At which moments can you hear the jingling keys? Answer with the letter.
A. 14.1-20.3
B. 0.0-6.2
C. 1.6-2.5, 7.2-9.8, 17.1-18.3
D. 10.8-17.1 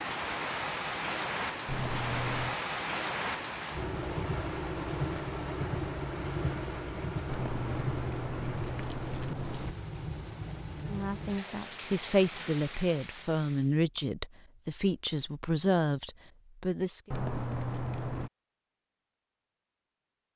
C.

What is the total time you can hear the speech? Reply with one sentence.
The speech can be heard for 6 seconds in total.